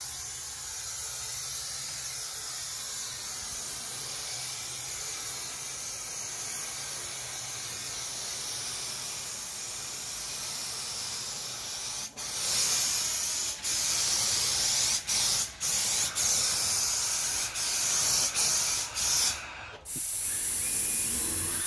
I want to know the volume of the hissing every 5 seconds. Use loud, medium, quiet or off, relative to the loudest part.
medium, medium, loud, loud, medium.